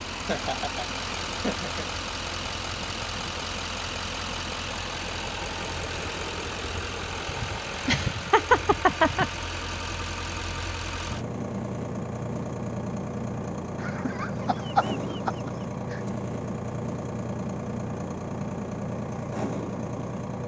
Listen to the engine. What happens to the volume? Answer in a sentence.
The volume of the engine stays about the same.